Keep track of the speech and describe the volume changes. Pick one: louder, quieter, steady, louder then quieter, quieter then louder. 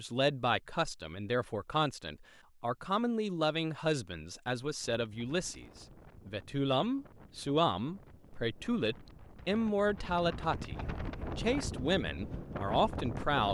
steady.